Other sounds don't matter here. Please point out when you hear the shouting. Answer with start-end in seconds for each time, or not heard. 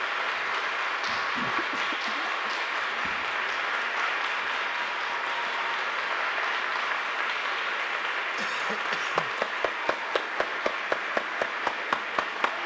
not heard.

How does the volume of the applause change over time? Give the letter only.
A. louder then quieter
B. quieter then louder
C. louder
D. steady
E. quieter
D.